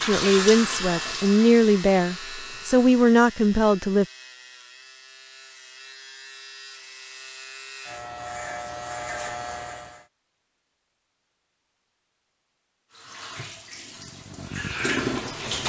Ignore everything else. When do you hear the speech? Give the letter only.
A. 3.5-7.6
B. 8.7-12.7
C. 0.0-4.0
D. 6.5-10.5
C.